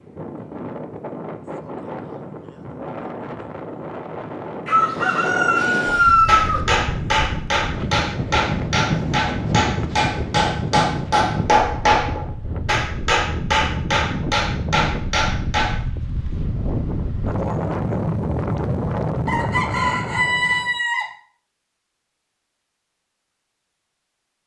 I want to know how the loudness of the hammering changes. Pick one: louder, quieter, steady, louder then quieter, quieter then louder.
steady.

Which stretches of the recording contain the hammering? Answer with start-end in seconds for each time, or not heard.
5.8-15.8.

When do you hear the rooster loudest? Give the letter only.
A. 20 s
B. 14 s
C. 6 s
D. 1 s
C.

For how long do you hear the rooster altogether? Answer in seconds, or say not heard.
4 s.